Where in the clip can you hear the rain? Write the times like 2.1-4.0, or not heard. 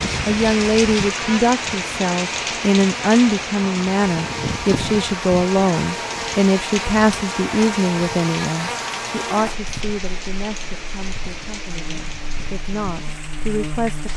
0.0-14.1.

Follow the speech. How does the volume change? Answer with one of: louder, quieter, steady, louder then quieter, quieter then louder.
quieter.